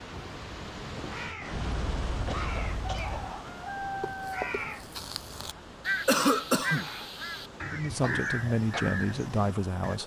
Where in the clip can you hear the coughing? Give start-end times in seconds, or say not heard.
1.5-3.4, 6.0-6.9.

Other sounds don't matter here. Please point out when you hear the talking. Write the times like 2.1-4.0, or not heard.
7.7-10.0.